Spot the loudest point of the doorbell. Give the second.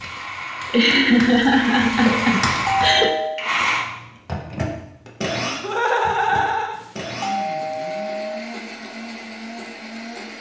3 s.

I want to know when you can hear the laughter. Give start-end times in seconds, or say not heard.
0.7-3.1, 5.6-6.8.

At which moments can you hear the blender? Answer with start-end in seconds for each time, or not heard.
0.0-10.3.